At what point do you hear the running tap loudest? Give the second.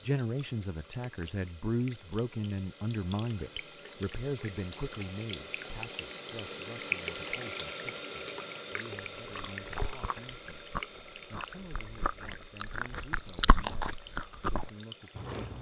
7 s.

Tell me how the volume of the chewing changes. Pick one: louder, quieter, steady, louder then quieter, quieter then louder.
quieter then louder.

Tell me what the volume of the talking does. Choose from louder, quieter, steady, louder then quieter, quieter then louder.
quieter.